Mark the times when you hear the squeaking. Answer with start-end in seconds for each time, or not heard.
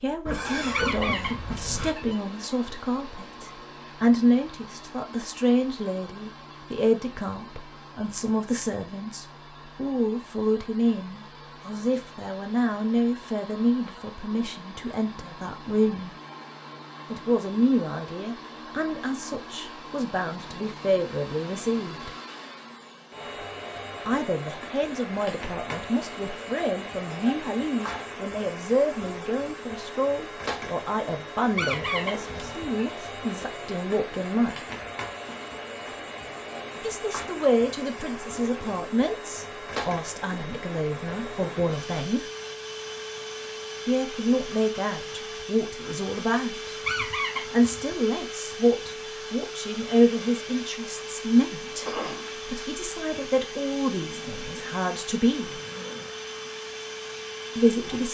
0.7-2.1, 31.6-32.9, 46.8-48.0.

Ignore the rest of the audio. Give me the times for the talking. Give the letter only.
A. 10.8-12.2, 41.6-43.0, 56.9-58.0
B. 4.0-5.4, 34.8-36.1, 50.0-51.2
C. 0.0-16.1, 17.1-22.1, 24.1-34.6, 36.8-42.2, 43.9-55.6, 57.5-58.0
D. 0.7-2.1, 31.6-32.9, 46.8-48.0
C.